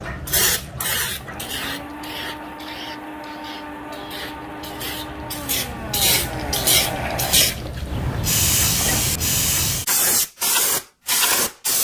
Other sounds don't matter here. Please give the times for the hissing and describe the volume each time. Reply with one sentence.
You can hear the hissing from 0.0 to 11.8 s, getting quieter then louder.